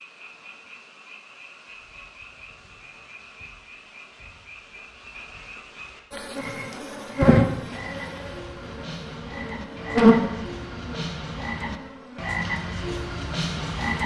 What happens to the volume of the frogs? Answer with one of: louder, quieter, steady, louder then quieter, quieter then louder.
louder.